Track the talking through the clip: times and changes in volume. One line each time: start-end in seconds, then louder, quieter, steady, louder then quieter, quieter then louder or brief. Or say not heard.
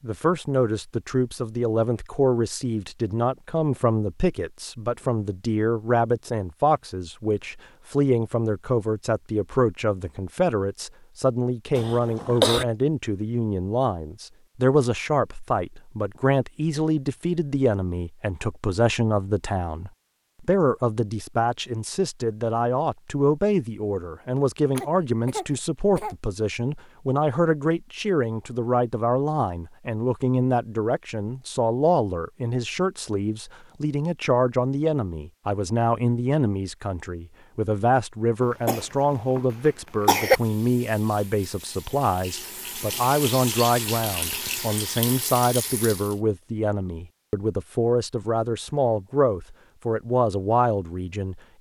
0.0-51.5 steady.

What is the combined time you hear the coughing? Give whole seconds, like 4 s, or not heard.
4 s.